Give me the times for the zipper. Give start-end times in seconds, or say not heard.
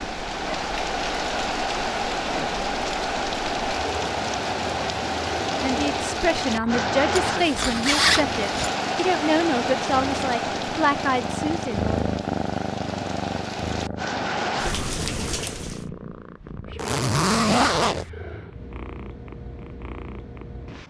7.2-8.7, 16.8-18.1.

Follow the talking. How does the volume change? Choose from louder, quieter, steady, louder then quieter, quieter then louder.
steady.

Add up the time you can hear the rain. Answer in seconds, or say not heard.
16 s.